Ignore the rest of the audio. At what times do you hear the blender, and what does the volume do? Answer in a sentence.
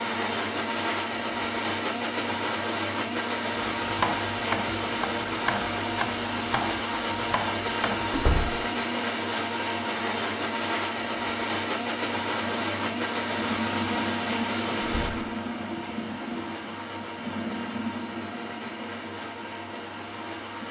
You can hear the blender from 0.0 to 20.6 s, getting quieter.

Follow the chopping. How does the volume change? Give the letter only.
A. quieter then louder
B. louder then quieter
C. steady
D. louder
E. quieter
E.